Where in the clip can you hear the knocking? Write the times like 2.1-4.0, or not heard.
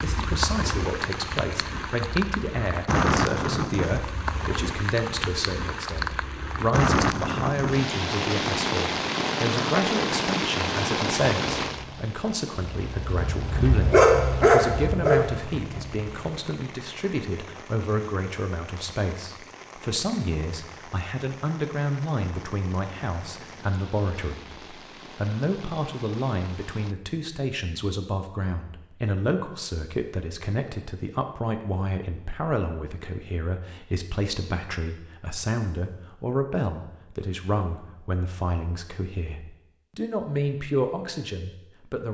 not heard.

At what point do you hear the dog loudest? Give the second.
14 s.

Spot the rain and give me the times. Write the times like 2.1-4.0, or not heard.
0.0-26.9.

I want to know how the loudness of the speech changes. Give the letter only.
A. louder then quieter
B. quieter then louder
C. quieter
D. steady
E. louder
D.